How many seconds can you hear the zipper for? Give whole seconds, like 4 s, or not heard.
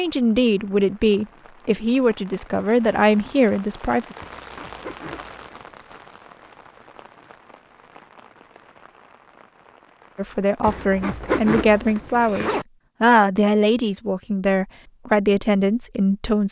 4 s.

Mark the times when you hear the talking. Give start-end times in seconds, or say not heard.
0.0-4.2, 10.2-16.4.